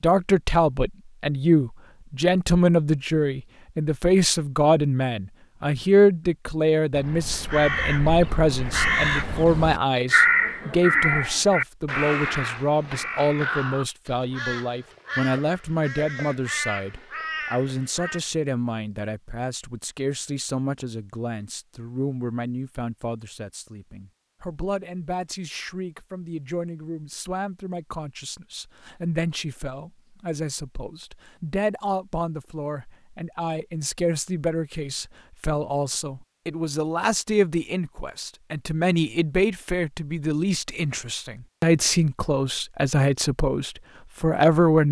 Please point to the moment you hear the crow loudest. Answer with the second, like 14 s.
10 s.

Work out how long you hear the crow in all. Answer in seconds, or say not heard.
11 s.